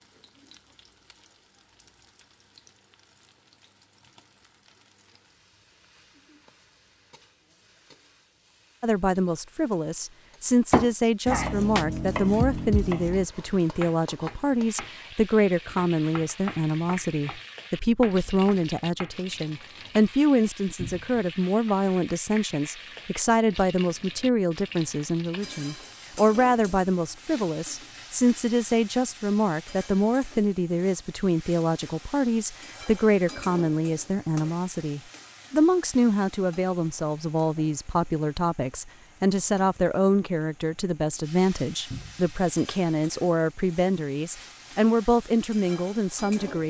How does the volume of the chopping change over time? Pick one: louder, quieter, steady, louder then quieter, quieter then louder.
quieter.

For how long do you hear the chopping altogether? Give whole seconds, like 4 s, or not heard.
8 s.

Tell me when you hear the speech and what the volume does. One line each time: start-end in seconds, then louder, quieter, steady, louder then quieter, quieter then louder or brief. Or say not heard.
8.8-46.6 steady.